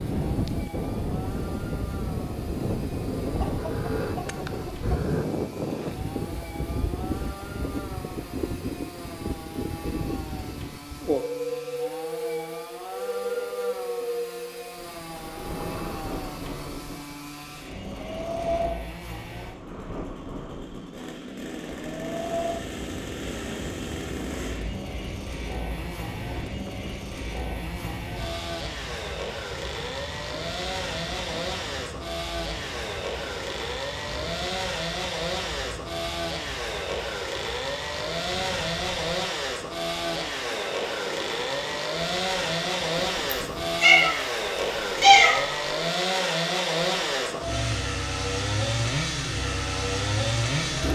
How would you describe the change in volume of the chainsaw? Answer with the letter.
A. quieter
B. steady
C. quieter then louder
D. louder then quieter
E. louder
E.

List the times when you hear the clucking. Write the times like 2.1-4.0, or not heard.
3.4-5.2.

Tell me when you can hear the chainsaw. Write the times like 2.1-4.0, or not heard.
0.0-50.8.